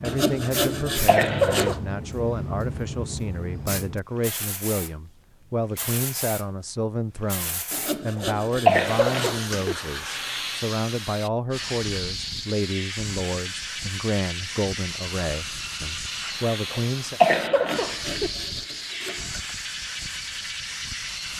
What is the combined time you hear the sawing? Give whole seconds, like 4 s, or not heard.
6 s.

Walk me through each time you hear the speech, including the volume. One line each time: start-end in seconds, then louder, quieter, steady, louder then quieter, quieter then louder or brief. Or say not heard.
0.0-17.2 steady.